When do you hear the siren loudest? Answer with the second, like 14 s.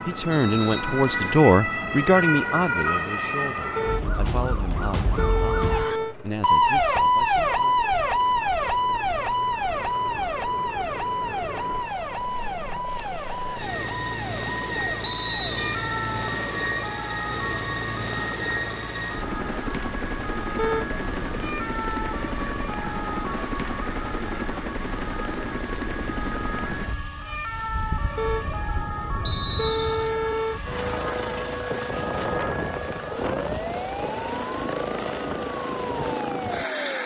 7 s.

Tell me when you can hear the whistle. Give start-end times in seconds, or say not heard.
0.3-1.4, 15.0-15.8, 29.2-30.1.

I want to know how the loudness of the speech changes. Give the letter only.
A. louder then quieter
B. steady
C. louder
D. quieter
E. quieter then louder
D.